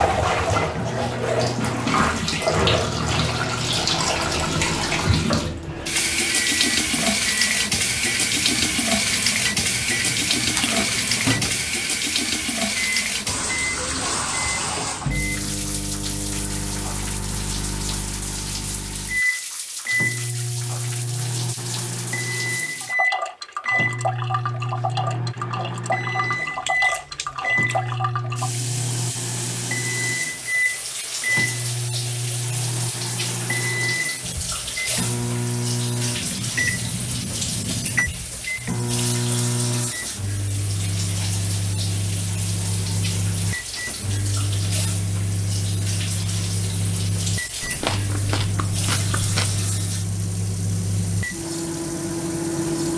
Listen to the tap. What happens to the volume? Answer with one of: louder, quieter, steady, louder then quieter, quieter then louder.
quieter.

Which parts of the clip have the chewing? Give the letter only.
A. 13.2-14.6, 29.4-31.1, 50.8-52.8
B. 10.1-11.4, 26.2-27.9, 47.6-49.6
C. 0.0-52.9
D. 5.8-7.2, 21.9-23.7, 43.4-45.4
B.